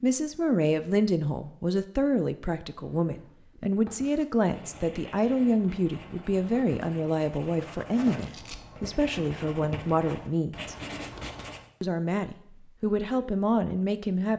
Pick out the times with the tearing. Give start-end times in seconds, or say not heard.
8.2-8.6.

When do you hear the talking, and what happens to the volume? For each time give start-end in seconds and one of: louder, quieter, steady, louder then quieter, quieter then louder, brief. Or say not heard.
0.0-10.8 steady
11.8-14.3 brief.